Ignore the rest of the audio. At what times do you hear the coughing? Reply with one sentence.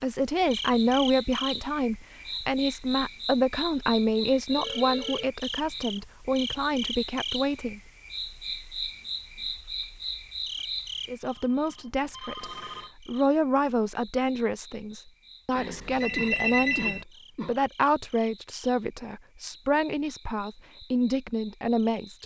The coughing can be heard from 16.1 to 17.6 s.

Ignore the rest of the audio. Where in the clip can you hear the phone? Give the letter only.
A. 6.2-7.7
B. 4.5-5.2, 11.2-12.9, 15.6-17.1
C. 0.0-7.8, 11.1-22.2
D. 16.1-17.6
B.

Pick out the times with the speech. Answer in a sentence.
The speech can be heard from 0.0 to 7.8 s and from 11.1 to 22.2 s.